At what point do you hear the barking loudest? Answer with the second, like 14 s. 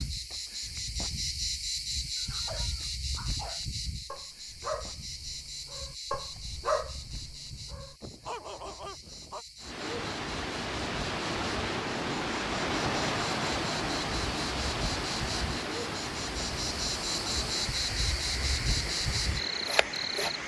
7 s.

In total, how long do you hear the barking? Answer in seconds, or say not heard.
7 s.